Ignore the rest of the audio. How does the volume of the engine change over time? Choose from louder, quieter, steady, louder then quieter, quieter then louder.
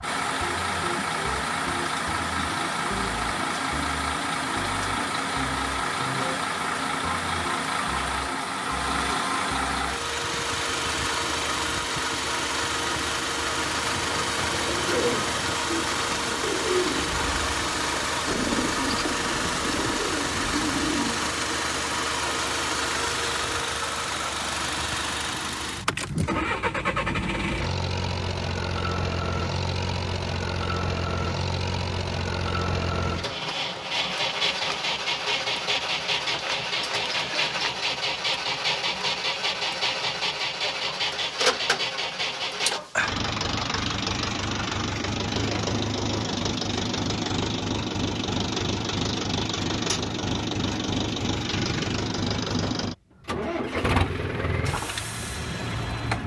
steady.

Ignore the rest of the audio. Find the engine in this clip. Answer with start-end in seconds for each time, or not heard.
0.0-56.2.